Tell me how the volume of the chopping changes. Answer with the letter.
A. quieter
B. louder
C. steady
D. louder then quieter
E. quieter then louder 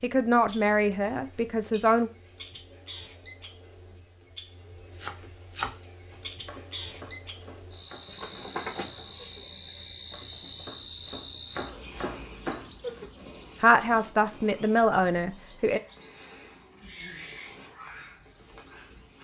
E.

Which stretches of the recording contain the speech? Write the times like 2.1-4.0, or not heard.
0.0-2.1, 13.6-15.8.